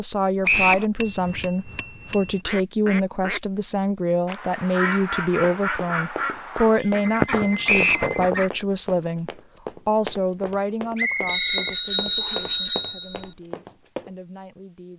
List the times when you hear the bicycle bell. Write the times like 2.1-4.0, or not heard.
1.0-2.4, 6.8-8.3, 11.2-13.3.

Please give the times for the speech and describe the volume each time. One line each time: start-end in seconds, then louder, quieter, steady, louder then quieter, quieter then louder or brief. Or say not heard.
0.0-14.9 quieter.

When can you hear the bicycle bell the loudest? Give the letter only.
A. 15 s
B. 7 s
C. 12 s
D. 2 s
C.